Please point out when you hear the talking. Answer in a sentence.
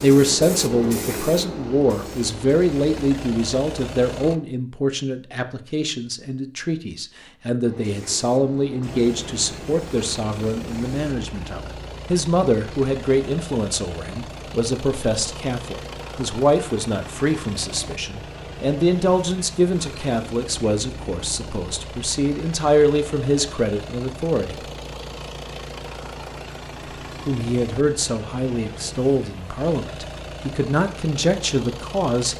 You can hear the talking from 0.0 to 24.6 s and from 27.2 to 32.3 s.